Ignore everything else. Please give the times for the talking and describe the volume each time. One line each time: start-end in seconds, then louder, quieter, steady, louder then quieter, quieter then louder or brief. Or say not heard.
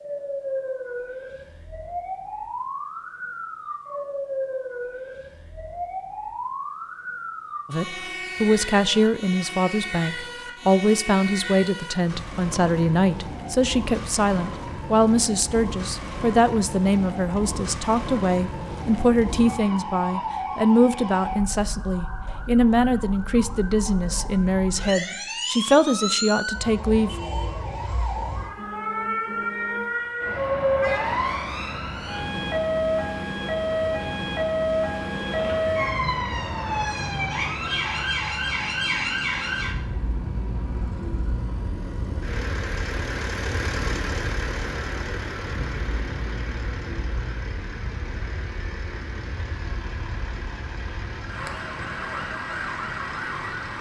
7.7-27.1 steady.